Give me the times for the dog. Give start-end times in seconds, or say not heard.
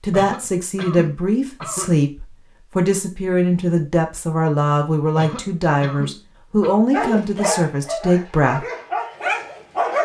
6.9-10.0.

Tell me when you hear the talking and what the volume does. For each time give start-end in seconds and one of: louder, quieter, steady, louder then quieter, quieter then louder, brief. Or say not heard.
0.0-8.7 steady.